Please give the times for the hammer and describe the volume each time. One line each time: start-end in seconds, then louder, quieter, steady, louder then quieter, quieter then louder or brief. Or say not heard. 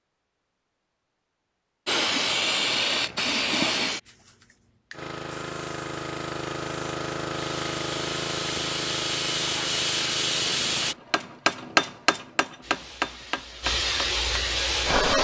10.8-15.1 quieter.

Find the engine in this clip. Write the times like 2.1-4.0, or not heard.
4.9-11.0.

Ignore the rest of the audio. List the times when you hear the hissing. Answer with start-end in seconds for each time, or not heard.
1.9-10.9, 12.6-15.1.